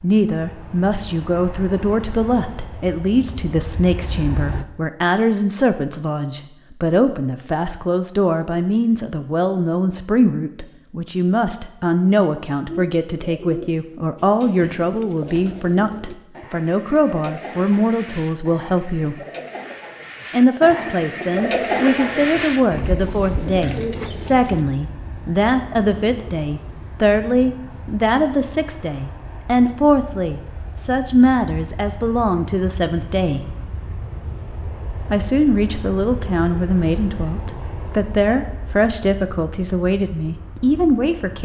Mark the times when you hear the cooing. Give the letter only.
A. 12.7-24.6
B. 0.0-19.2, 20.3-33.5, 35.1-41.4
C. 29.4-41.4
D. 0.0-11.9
A.